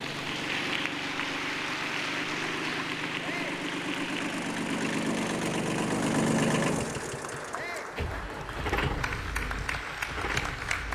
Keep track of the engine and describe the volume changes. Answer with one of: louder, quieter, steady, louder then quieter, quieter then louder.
louder then quieter.